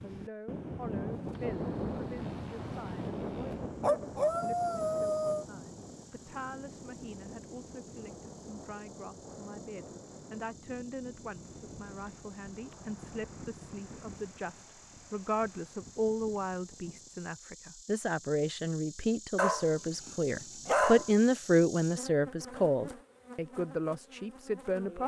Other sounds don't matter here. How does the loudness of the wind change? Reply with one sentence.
The loudness of the wind goes down.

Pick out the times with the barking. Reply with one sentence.
You can hear the barking from 3.8 to 5.5 s and from 19.4 to 21.1 s.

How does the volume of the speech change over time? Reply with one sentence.
The loudness of the speech goes up.